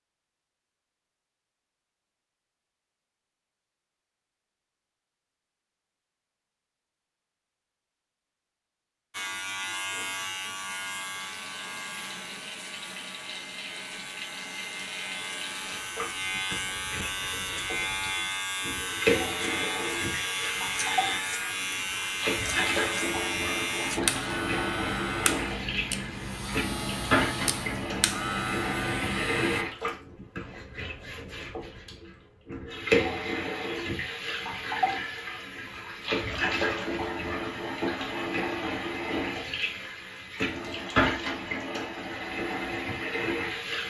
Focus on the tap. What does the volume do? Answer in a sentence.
The loudness of the tap goes up.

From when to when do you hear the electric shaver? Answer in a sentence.
You can hear the electric shaver from 9.1 to 29.6 s.